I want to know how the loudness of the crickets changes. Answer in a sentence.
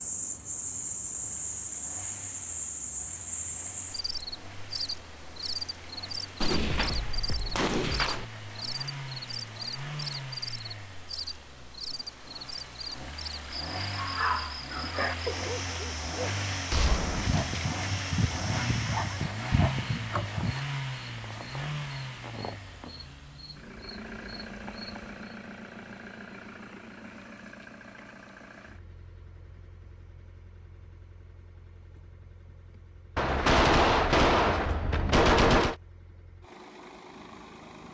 The volume of the crickets goes down.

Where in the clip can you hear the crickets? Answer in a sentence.
You can hear the crickets from 0.0 to 25.1 s.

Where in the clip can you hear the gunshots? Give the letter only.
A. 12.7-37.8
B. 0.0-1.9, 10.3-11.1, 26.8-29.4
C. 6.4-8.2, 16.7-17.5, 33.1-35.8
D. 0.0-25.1
C.